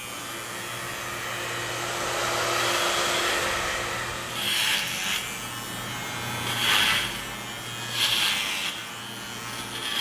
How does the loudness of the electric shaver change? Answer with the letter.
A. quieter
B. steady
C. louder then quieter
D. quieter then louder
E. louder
E.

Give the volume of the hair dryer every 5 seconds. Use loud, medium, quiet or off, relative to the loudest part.
loud, off.